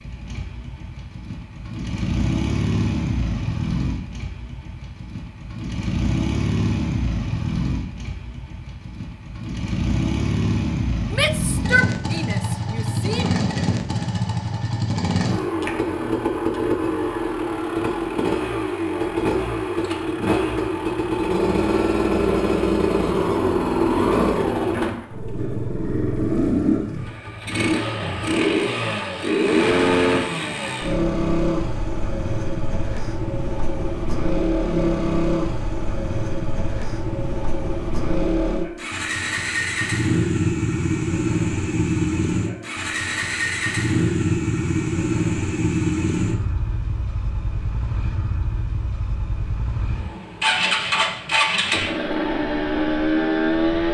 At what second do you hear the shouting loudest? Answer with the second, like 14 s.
12 s.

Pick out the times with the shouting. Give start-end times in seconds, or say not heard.
11.1-13.4.